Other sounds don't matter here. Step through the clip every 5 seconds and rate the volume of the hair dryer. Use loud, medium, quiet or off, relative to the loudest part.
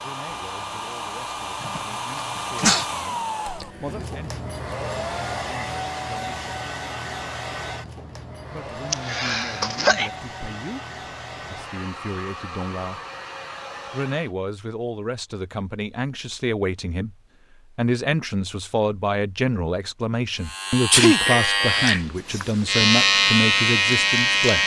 loud, loud, medium, off, off.